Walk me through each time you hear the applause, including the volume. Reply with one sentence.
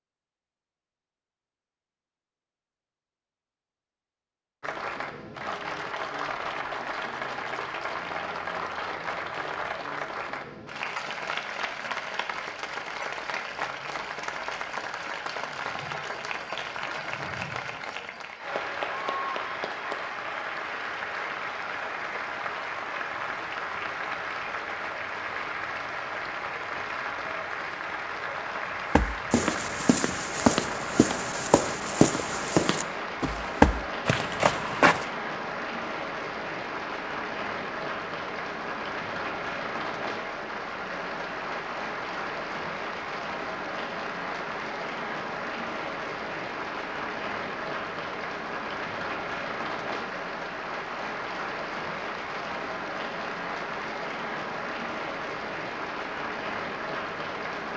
You can hear the applause from 4.6 to 57.7 s, at a steady volume.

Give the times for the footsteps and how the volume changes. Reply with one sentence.
You can hear the footsteps from 28.9 to 35.0 s, getting louder.